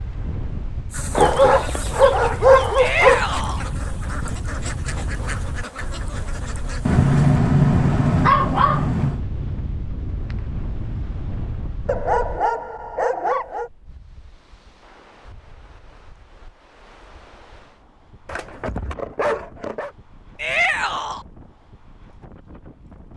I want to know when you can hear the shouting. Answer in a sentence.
The shouting can be heard from 2.8 to 3.6 s and from 20.4 to 21.2 s.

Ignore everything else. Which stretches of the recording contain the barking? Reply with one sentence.
You can hear the barking from 1.1 to 3.2 s, from 6.8 to 9.2 s, from 11.8 to 13.7 s and from 18.2 to 19.9 s.